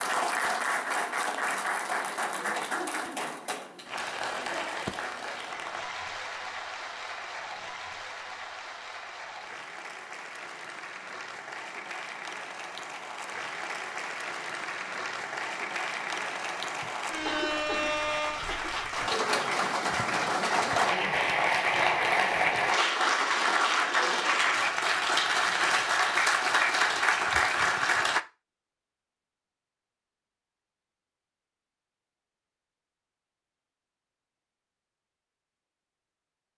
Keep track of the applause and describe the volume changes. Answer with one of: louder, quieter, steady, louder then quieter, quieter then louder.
quieter then louder.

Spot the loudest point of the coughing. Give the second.
17 s.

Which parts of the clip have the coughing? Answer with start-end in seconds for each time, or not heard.
16.8-18.7.